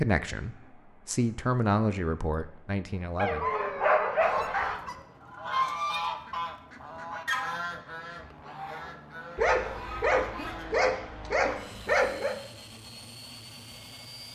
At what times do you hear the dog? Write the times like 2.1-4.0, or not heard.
3.1-4.8, 9.3-12.3.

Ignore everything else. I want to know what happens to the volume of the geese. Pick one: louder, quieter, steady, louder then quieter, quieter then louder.
quieter.